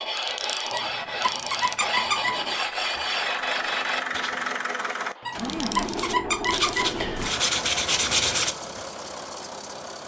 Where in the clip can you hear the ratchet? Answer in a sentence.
The ratchet can be heard from 0.1 to 1.9 s and from 5.3 to 6.9 s.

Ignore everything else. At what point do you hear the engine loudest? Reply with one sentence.
The loudest moment of the engine is at 4 seconds.